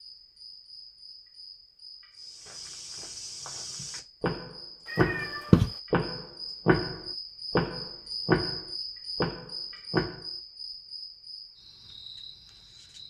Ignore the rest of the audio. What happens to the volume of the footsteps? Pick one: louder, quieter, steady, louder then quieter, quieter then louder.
louder then quieter.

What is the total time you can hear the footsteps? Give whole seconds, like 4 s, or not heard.
8 s.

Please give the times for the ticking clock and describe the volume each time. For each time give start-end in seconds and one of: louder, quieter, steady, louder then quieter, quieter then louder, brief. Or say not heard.
not heard.